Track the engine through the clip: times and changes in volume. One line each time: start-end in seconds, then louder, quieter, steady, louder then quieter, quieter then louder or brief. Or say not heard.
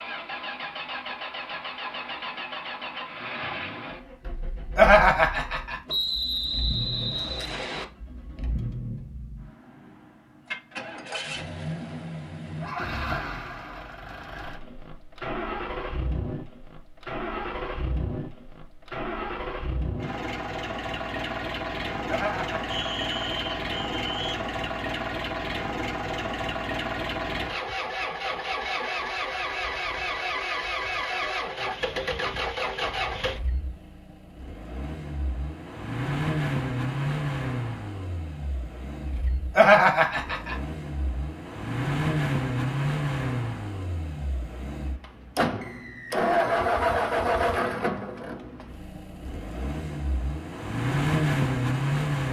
0.0-52.2 louder.